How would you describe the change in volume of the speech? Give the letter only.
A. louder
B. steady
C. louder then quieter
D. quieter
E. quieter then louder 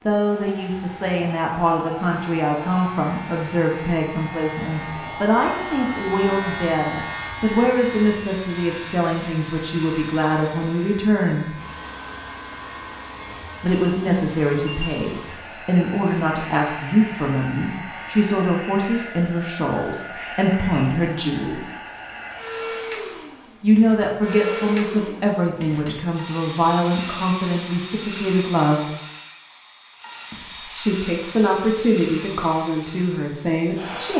B.